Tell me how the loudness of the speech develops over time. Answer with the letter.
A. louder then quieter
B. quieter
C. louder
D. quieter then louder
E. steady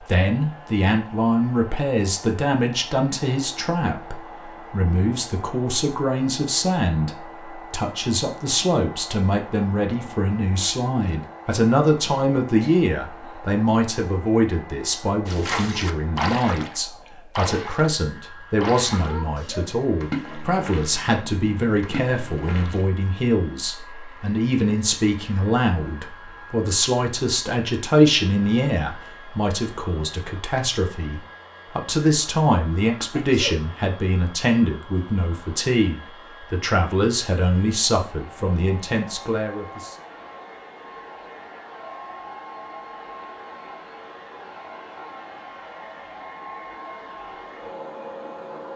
E.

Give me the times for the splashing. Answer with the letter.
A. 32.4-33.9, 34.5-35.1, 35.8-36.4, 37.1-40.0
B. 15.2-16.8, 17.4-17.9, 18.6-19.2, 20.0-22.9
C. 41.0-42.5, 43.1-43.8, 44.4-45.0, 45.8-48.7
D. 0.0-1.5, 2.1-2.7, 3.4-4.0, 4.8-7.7
B.